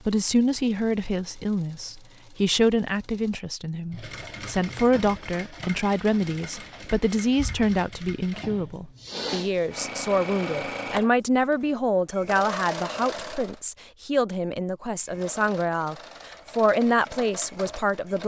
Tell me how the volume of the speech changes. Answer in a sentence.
The loudness of the speech stays about the same.